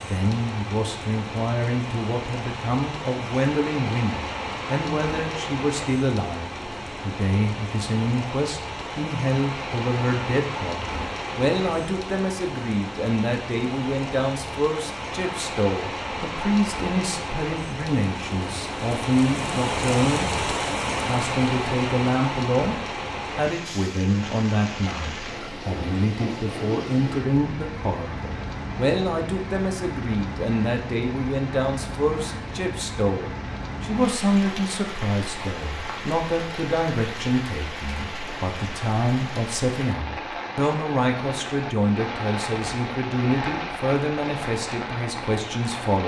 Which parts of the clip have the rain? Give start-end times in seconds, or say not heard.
0.0-46.0.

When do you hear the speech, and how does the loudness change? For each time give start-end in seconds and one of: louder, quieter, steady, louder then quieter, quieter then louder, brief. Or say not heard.
0.0-46.0 steady.